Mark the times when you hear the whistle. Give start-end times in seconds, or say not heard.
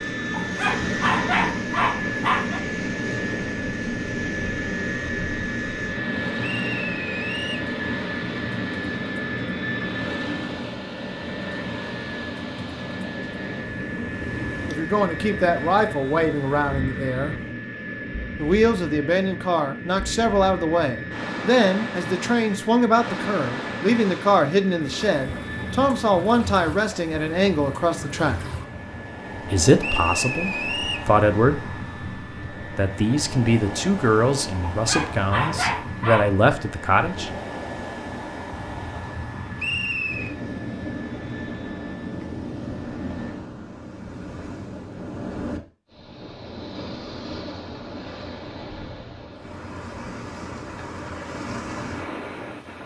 6.4-7.7, 29.8-31.1, 39.5-40.4.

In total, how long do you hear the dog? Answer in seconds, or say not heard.
4 s.